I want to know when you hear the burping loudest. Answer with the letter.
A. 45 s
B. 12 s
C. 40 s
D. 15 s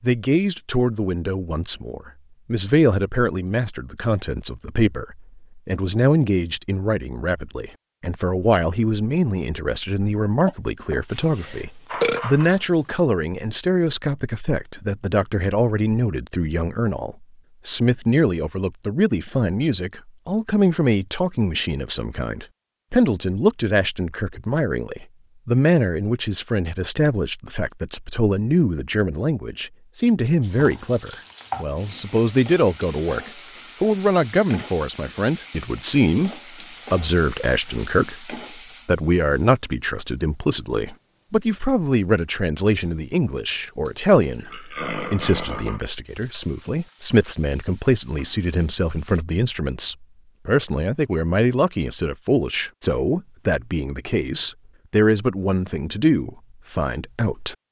B.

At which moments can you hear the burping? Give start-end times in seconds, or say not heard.
10.4-12.2, 43.9-45.9.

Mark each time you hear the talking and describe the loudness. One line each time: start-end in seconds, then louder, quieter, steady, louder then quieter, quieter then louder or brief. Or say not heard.
0.0-36.3 steady
36.9-57.5 steady.